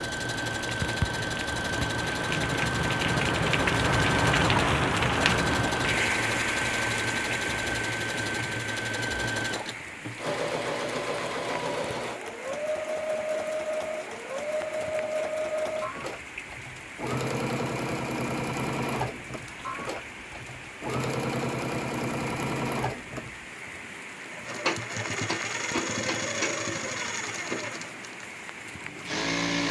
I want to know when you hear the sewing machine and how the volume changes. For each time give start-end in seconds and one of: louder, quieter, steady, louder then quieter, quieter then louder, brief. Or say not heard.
0.0-29.6 steady.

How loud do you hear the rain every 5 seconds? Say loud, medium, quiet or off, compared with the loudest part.
loud, loud, quiet, quiet, quiet, quiet.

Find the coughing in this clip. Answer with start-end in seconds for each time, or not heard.
not heard.